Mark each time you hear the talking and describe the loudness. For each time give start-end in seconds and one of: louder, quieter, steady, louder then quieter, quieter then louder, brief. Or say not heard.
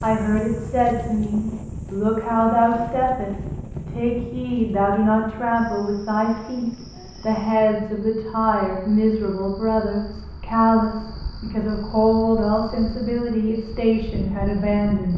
0.0-15.1 steady.